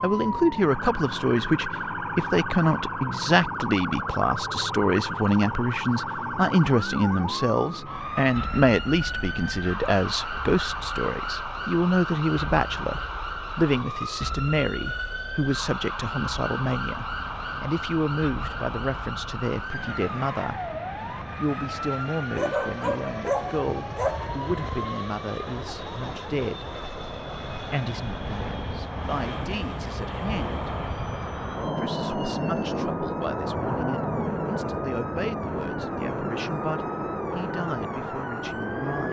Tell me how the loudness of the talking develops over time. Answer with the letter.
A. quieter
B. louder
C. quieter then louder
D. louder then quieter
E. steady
A.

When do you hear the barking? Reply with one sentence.
You can hear the barking from 22.3 to 24.9 s.